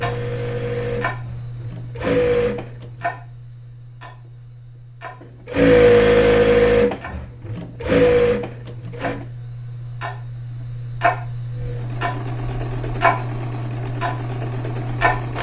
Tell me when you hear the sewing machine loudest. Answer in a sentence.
The volume of the sewing machine peaks at 6 seconds.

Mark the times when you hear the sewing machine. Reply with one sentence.
The sewing machine can be heard from 0.0 to 3.0 s, from 5.5 to 9.2 s and from 11.6 to 15.3 s.